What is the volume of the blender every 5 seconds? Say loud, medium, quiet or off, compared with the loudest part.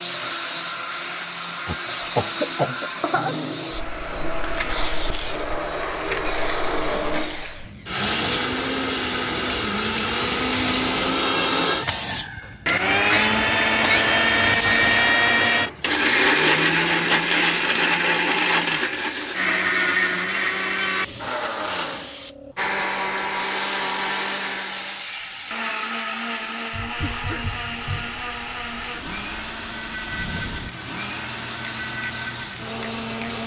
medium, medium, loud, loud, medium, medium, medium.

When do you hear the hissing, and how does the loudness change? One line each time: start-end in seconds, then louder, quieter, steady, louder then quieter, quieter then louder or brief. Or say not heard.
0.0-33.4 quieter.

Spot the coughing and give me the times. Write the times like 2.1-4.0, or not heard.
1.6-3.4, 13.1-14.2, 27.0-28.2.